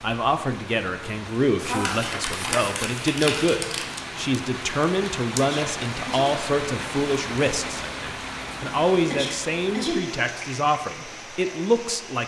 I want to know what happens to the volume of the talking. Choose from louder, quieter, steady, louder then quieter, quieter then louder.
steady.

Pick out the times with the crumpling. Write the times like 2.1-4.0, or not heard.
1.6-3.9.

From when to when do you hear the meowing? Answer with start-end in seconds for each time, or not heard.
not heard.